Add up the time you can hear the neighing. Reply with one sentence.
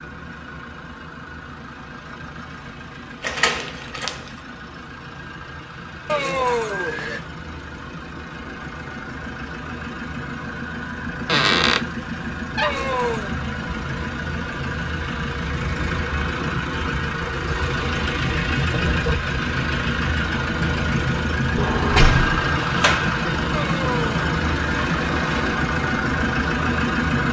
You can hear the neighing for 4 seconds altogether.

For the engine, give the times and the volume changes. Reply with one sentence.
You can hear the engine from 0.0 to 27.2 s, getting louder.